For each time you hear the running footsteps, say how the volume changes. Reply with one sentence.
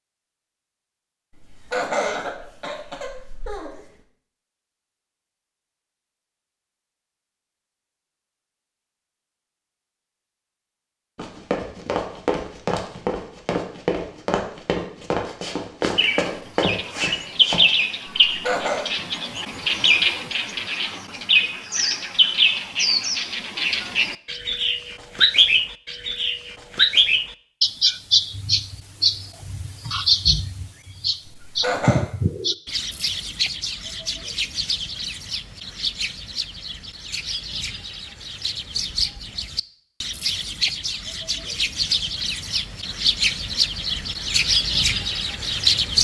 You can hear the running footsteps from 11.2 to 17.6 s, at a steady volume.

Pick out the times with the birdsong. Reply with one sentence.
You can hear the birdsong from 15.9 to 45.9 s.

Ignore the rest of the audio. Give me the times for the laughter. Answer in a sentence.
The laughter can be heard from 1.4 to 3.8 s, from 18.2 to 18.9 s and from 31.2 to 32.0 s.